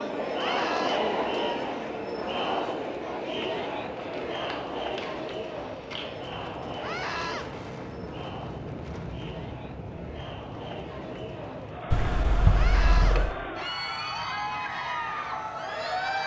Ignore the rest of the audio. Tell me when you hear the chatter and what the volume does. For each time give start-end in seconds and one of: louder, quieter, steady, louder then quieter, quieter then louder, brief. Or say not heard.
0.0-16.2 quieter then louder.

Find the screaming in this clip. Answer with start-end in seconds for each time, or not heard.
0.3-1.0, 6.8-7.5, 12.5-13.2.